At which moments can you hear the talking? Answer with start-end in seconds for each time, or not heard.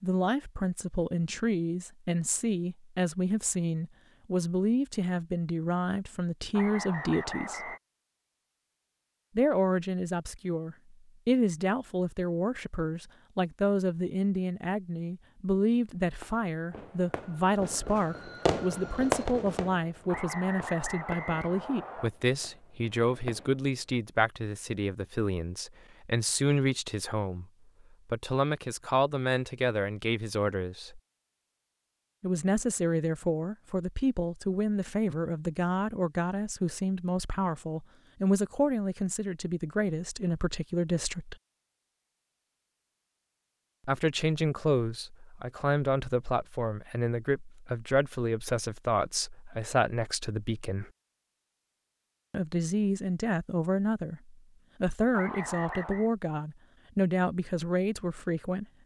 0.0-7.7, 9.3-27.4, 28.1-31.0, 32.2-41.4, 43.9-50.9, 52.3-58.6.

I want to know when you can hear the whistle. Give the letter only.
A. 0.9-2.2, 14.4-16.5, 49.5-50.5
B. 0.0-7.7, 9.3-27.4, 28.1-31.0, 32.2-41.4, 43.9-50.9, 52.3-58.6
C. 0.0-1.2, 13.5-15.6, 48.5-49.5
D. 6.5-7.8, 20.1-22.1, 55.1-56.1
D.